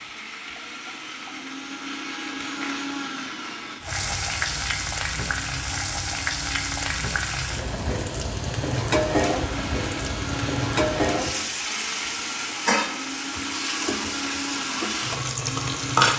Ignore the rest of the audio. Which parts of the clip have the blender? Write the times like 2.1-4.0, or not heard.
0.0-7.5, 9.2-16.1.